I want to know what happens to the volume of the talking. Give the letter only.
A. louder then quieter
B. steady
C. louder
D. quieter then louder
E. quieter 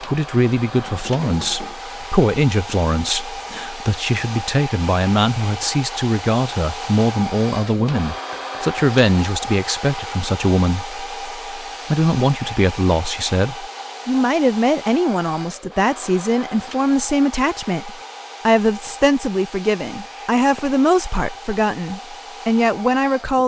B.